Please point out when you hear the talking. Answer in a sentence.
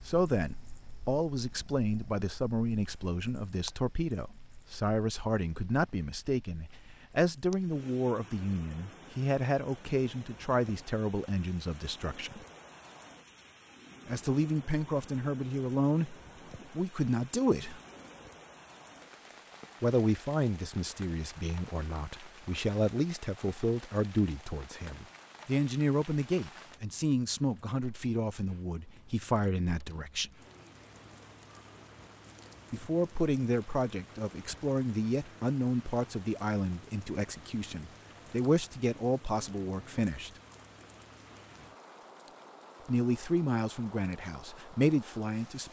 You can hear the talking from 0.0 to 12.4 s, from 14.1 to 17.8 s, from 19.8 to 30.3 s, from 32.7 to 40.3 s and from 42.9 to 45.6 s.